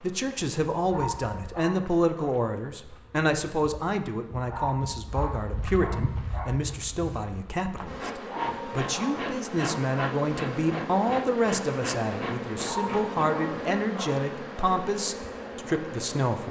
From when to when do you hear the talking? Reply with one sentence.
You can hear the talking from 0.0 to 16.4 s.